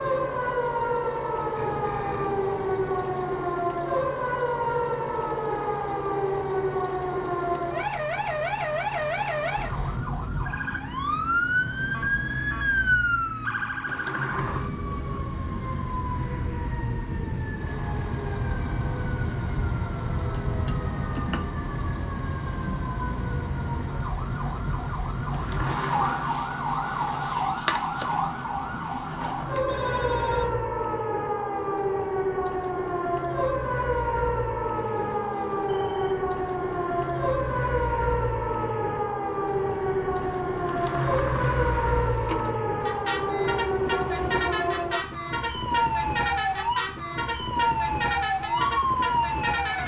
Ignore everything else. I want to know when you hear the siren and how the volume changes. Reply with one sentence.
You can hear the siren from 0.0 to 49.8 s, at a steady volume.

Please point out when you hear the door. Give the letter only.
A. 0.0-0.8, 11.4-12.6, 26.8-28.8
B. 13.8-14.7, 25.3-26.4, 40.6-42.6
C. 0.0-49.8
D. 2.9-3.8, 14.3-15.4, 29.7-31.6
B.